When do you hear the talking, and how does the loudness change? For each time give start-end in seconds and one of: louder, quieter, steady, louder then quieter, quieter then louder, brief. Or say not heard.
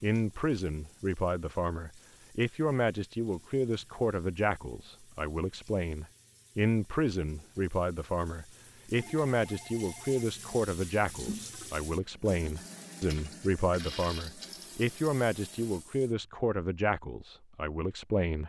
0.0-18.4 steady.